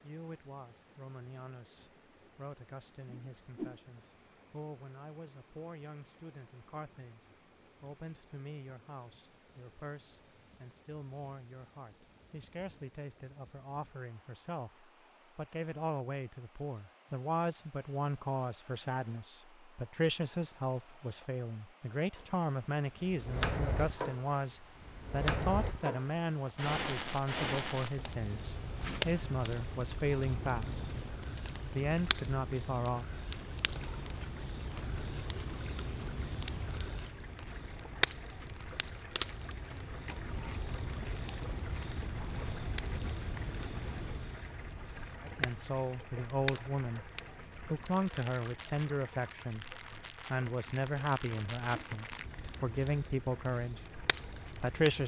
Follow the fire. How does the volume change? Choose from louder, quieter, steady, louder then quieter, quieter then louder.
quieter.